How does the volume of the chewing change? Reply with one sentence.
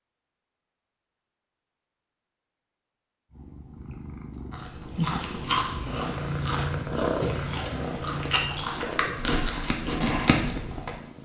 The loudness of the chewing goes down, then up.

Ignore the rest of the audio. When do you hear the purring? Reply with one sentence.
The purring can be heard from 3.3 to 11.1 s.